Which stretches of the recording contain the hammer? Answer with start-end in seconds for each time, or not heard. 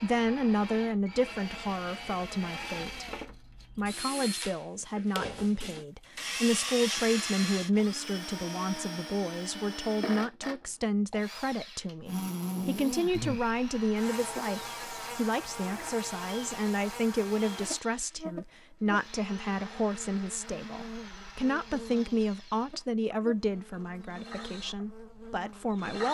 not heard.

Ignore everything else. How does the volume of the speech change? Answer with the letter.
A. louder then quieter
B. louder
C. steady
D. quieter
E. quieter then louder
C.